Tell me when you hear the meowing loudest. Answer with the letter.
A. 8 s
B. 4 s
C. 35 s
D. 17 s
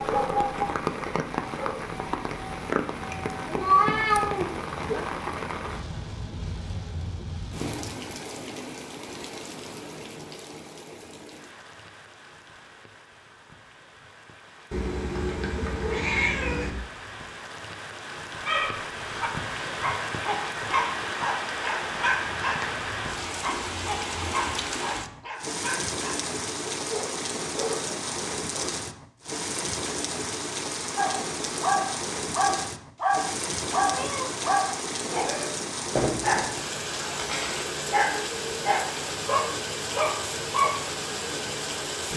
B.